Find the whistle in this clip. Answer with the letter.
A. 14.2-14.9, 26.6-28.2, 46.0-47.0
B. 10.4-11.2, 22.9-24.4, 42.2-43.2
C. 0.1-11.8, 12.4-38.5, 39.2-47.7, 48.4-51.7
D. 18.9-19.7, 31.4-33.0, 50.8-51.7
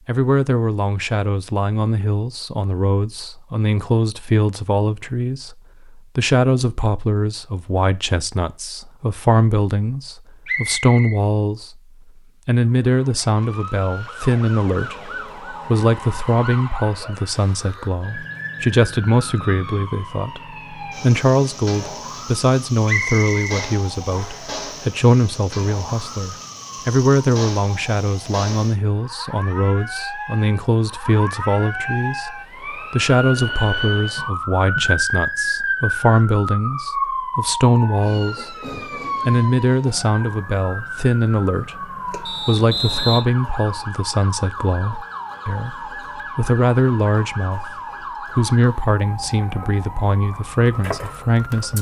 B.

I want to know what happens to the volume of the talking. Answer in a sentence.
The loudness of the talking stays about the same.